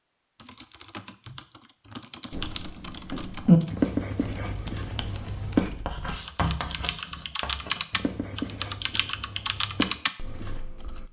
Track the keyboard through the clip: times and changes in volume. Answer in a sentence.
You can hear the keyboard from 0.3 to 11.0 s, getting louder.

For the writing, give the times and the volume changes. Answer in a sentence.
You can hear the writing from 2.3 to 10.7 s, getting quieter.